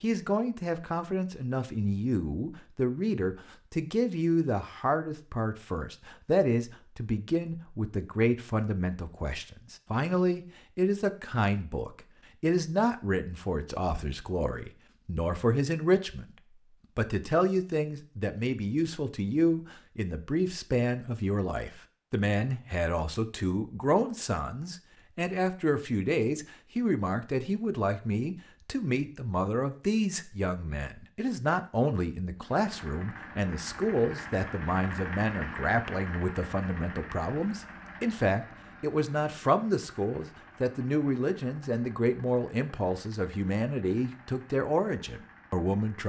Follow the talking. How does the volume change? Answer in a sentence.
The loudness of the talking stays about the same.